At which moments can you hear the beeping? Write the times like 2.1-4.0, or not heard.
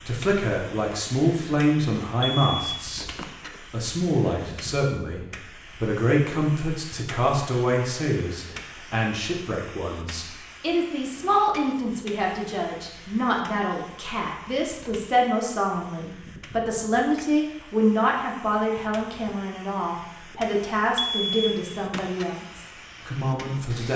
2.2-3.6, 20.9-22.4.